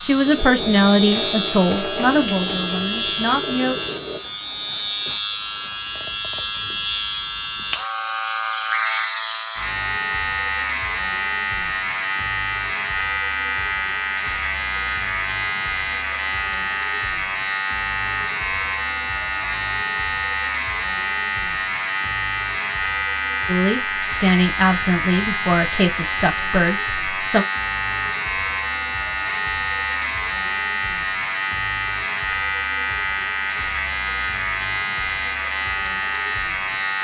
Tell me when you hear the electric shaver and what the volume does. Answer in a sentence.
The electric shaver can be heard from 0.0 to 37.0 s, at a steady volume.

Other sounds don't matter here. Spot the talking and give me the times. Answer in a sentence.
You can hear the talking from 0.0 to 3.8 s and from 23.4 to 27.4 s.